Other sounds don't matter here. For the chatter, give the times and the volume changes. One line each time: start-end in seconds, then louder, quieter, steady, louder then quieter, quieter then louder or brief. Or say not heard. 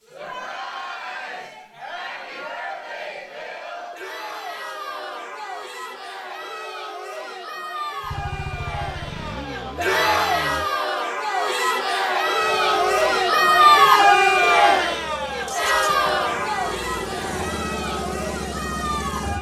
0.0-19.3 louder then quieter.